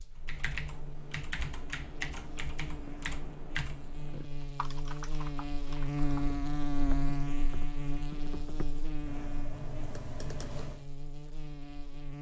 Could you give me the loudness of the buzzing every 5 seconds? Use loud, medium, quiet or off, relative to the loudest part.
medium, loud, medium.